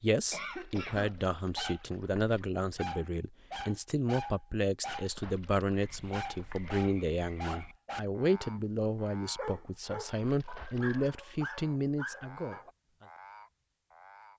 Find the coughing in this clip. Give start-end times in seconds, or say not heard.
0.1-1.6.